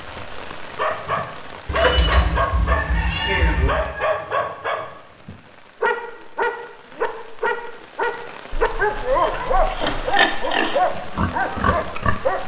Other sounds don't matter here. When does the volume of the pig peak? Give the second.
10 s.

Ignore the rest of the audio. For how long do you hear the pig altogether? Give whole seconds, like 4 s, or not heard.
3 s.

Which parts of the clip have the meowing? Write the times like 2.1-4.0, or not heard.
1.6-3.7, 8.5-10.2.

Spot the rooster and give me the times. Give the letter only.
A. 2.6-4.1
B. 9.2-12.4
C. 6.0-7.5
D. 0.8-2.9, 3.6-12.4
A.